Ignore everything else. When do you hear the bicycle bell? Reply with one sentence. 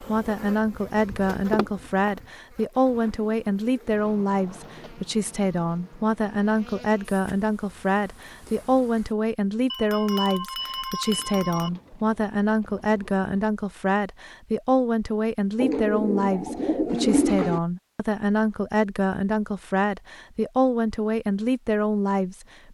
You can hear the bicycle bell from 9.7 to 11.7 s.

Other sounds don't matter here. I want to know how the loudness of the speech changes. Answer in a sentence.
The loudness of the speech stays about the same.